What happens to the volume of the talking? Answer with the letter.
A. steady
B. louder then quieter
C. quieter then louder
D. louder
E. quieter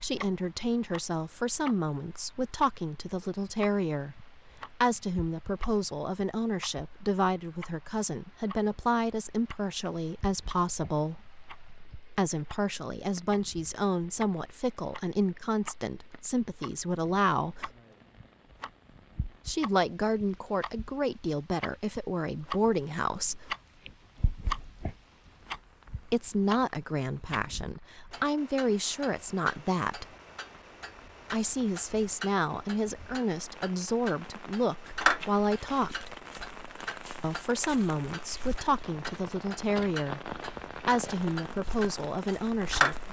A.